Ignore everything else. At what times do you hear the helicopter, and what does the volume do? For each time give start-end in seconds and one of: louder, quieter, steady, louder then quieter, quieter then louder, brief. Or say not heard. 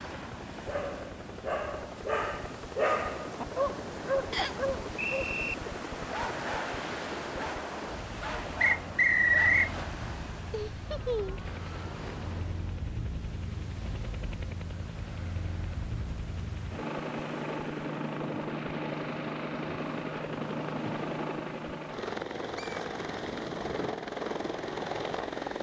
0.0-25.5 louder.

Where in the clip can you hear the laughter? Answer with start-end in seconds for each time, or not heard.
10.5-11.4.